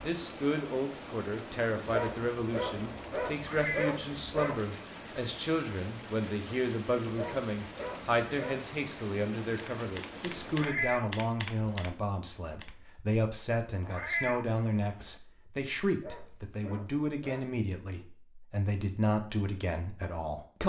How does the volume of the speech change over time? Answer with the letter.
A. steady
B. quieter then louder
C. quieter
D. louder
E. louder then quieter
A.